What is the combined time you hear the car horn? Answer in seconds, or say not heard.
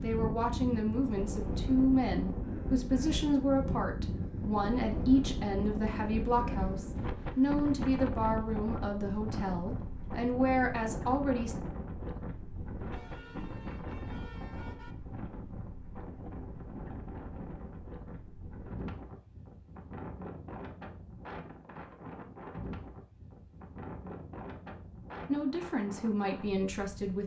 2 s.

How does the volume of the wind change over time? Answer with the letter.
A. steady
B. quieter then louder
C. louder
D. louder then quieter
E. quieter
E.